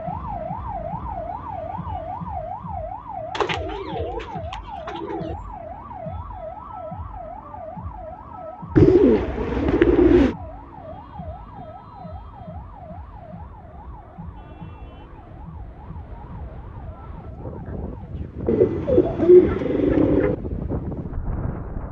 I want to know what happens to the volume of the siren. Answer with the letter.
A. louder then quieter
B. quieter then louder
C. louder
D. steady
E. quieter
E.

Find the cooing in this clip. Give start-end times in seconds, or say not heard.
3.4-5.3, 8.8-10.3, 18.4-20.4.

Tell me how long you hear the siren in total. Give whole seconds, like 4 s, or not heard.
18 s.